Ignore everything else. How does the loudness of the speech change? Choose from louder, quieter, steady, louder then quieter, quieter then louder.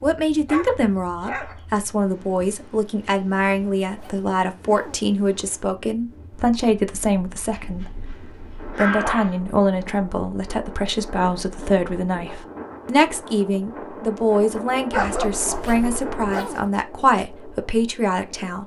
steady.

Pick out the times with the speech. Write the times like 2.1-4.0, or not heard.
0.0-18.6.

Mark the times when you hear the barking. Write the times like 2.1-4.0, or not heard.
0.5-1.6, 7.5-9.3, 14.9-16.4.